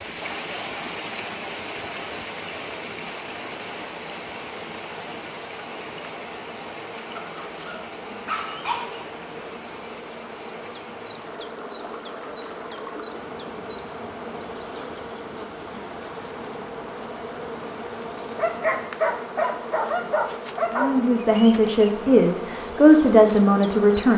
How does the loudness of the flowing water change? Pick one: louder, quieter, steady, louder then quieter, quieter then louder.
quieter.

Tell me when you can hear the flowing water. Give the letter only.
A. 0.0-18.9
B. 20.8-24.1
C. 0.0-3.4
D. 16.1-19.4
A.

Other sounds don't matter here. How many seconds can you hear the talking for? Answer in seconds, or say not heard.
3 s.